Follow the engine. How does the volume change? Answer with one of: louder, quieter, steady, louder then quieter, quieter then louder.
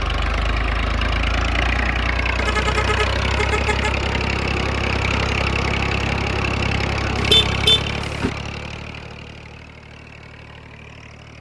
quieter.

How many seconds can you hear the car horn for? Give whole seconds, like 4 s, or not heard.
3 s.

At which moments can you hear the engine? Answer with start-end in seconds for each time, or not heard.
0.0-11.3.